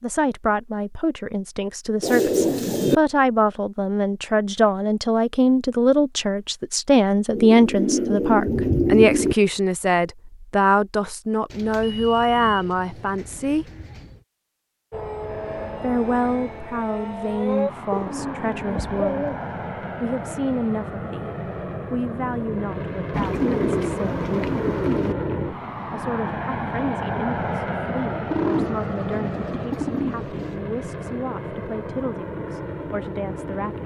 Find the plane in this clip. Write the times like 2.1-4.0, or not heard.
14.9-33.8.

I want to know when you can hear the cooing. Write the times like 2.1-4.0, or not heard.
2.0-3.0, 7.3-9.3, 11.5-14.2, 17.9-19.5, 23.1-25.1, 28.2-30.6.